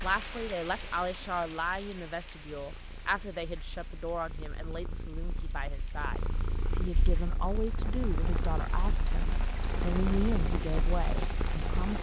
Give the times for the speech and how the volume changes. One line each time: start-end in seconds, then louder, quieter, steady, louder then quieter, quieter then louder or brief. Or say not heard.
0.0-11.9 quieter then louder.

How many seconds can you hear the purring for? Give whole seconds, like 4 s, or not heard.
12 s.